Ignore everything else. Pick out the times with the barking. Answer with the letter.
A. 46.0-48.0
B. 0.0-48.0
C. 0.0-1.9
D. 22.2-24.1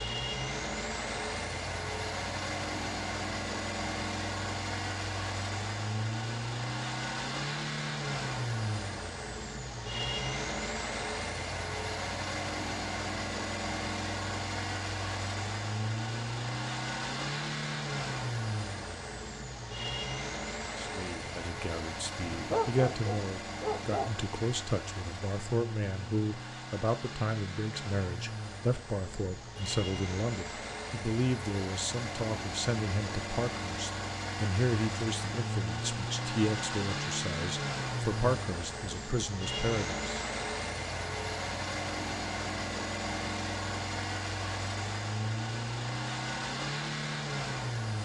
D.